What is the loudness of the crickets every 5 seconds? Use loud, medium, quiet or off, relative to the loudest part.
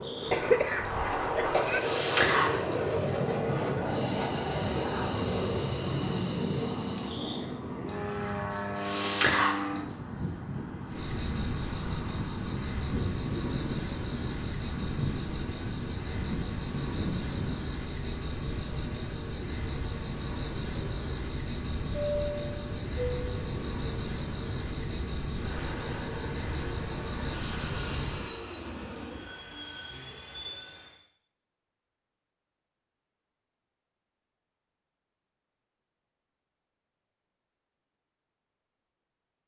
loud, loud, loud, loud, loud, loud, off, off.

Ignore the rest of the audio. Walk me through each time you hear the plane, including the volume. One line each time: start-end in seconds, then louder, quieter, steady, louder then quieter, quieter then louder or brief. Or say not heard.
0.0-31.0 quieter.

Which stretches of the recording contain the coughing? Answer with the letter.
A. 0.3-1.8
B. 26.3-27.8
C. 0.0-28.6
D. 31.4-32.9
A.